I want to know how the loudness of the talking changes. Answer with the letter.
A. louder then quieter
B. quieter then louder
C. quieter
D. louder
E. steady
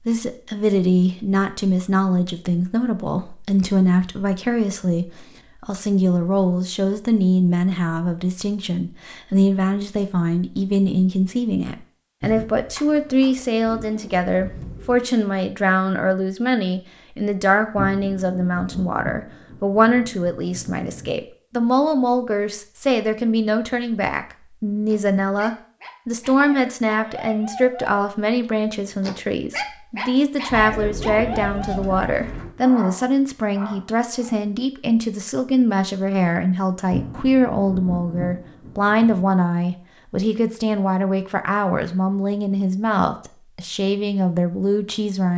E.